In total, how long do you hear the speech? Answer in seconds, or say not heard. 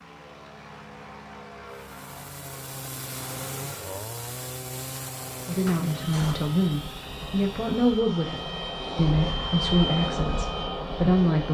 6 s.